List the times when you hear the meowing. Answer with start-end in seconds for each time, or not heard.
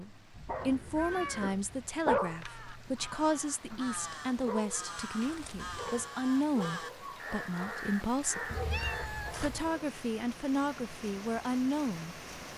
0.6-1.5, 5.2-6.0, 8.5-9.6.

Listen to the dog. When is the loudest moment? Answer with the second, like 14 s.
2 s.